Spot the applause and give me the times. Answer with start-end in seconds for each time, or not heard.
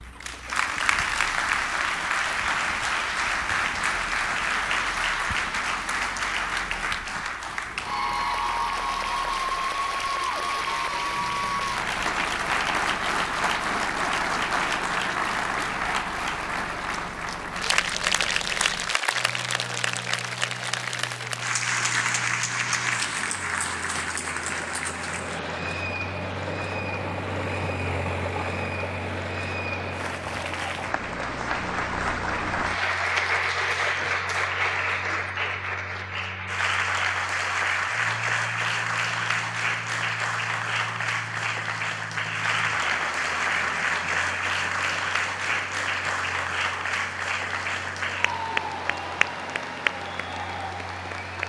0.1-51.4.